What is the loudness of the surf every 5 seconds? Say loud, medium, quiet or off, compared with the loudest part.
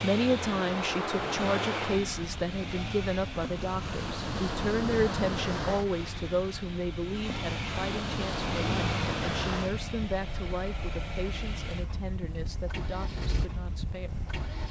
loud, loud, medium.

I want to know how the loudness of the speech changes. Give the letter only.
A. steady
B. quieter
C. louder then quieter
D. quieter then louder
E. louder
B.